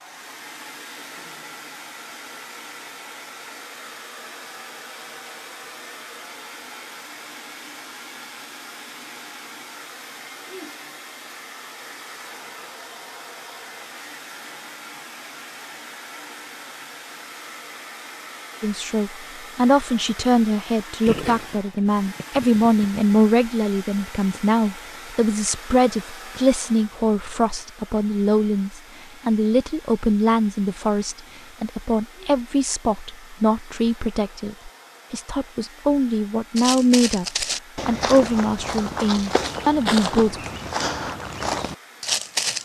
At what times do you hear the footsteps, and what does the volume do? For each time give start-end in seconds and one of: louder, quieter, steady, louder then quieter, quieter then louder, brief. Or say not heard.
36.5-42.6 steady.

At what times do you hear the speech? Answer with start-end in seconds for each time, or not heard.
18.6-40.5.